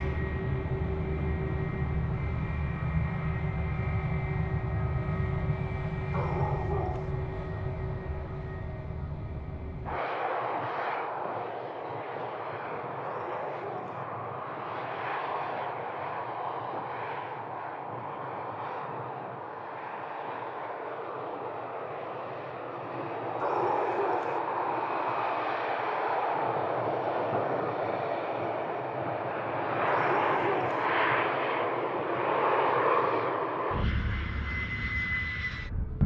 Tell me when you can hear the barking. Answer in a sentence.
You can hear the barking from 6.1 to 7.1 s, from 13.1 to 14.1 s, from 23.4 to 24.4 s and from 29.9 to 30.9 s.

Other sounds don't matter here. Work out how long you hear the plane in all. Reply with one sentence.
You can hear the plane for 36 seconds altogether.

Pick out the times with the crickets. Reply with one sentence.
The crickets can't be heard in this clip.